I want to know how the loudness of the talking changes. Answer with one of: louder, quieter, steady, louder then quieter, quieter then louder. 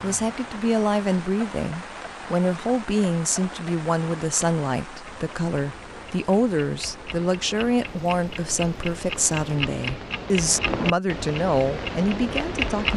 steady.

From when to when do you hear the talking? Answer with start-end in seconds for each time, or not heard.
0.0-12.9.